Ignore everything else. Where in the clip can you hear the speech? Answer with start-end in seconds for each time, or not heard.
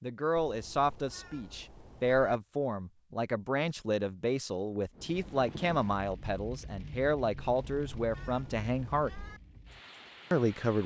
0.0-9.1, 10.3-10.8.